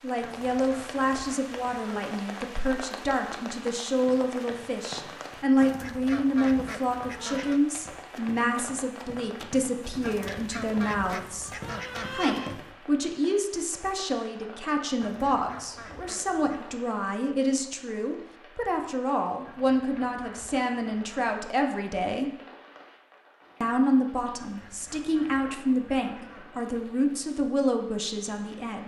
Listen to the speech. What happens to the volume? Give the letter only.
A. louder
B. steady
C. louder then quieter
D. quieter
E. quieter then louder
B.